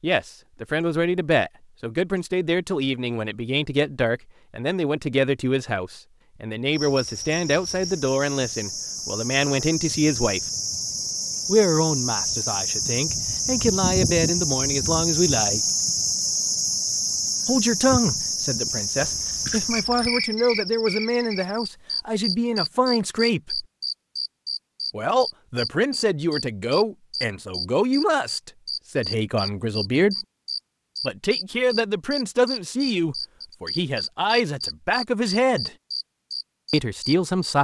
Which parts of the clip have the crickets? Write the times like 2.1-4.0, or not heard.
6.7-37.5.